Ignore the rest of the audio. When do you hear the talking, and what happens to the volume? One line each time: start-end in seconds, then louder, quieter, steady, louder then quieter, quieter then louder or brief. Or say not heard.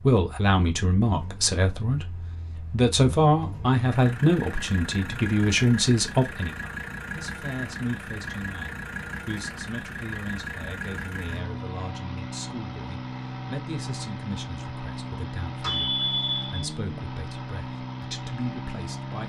0.0-19.2 quieter.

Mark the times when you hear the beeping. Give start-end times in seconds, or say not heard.
15.6-16.6.